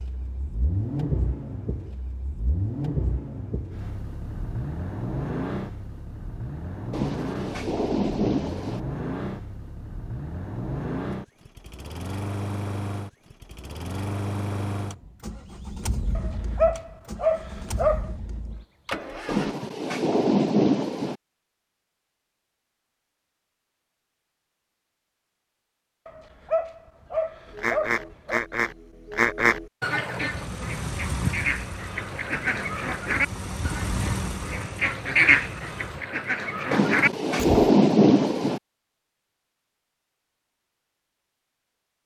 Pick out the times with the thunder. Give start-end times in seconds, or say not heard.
6.9-8.8, 19.2-21.1, 36.7-38.6.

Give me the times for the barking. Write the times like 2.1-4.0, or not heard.
16.1-18.1, 26.1-28.4.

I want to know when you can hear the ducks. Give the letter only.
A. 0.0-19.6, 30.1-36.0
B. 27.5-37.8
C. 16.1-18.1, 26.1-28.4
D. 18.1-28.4
B.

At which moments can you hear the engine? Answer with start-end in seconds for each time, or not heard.
0.0-19.6, 30.1-36.0.